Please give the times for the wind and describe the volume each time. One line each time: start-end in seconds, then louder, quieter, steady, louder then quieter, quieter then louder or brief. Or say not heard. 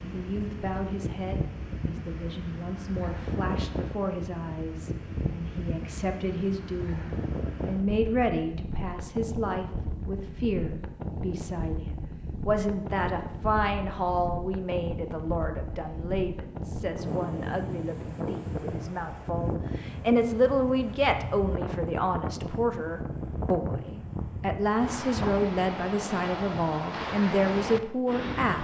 0.0-28.6 steady.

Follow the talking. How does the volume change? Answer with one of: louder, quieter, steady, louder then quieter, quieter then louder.
louder.